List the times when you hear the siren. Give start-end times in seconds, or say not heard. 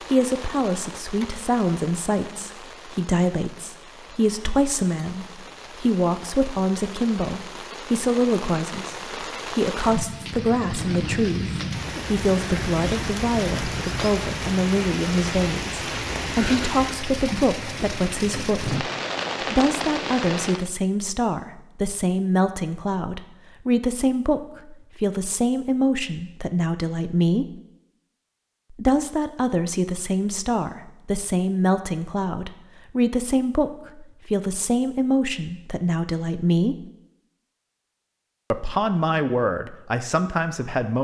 not heard.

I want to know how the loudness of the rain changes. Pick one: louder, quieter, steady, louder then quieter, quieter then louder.
louder.